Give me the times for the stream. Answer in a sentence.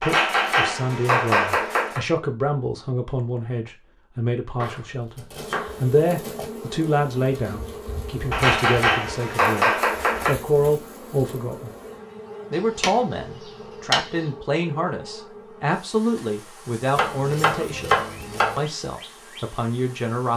The stream can't be heard in this clip.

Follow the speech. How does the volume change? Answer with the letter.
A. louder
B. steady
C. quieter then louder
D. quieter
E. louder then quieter
B.